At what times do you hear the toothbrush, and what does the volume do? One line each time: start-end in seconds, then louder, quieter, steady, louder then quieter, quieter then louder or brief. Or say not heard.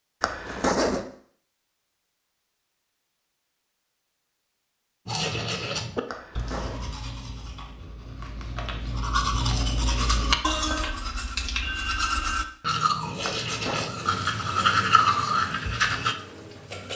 5.0-16.1 louder.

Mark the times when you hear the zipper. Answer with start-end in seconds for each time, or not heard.
0.2-1.1, 6.0-6.8, 13.2-13.9.